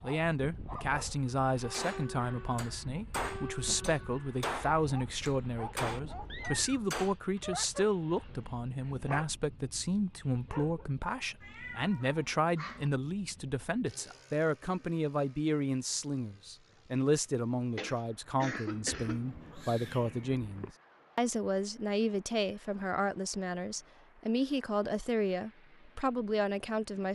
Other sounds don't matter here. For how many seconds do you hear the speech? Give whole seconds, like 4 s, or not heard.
27 s.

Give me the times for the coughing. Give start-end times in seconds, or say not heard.
17.7-19.2.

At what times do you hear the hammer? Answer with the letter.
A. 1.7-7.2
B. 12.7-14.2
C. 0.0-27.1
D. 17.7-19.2
A.